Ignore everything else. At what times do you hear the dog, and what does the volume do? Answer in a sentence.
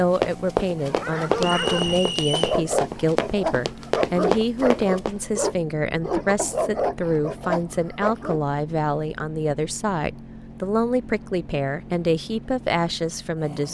The dog can be heard from 0.8 to 8.4 s, at a steady volume.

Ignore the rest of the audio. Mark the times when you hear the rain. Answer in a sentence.
The rain can't be heard in this clip.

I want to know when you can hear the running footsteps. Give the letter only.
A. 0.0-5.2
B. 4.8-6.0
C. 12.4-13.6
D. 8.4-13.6
A.